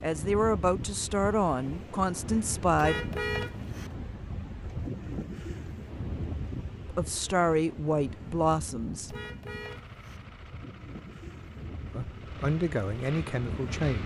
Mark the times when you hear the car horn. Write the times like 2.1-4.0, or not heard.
2.8-4.0, 9.1-10.2.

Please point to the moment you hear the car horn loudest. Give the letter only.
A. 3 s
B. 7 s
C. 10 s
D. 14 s
A.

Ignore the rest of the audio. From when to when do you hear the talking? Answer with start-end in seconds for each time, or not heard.
0.0-3.0, 6.9-9.2, 11.8-14.0.